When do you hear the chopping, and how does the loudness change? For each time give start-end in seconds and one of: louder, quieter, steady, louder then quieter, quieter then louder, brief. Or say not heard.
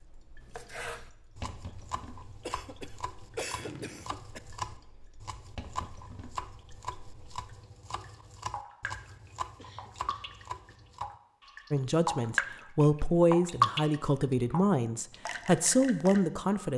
0.5-11.2 steady.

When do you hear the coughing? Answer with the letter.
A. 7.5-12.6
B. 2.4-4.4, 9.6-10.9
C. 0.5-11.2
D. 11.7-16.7
B.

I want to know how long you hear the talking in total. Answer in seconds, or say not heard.
5 s.